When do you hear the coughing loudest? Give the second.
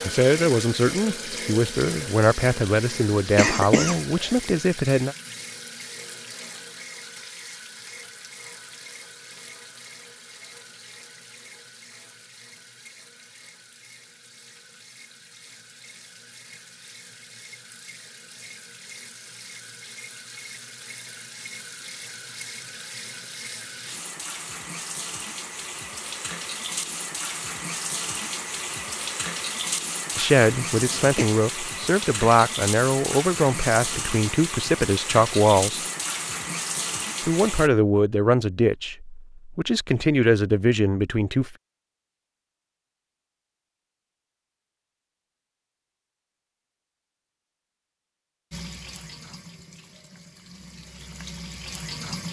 4 s.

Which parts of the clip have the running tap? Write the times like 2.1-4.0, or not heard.
0.0-37.7, 48.5-52.2.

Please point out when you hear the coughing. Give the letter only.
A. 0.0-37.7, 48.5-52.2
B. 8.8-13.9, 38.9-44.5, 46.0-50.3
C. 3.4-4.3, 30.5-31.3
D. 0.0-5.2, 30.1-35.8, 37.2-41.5
C.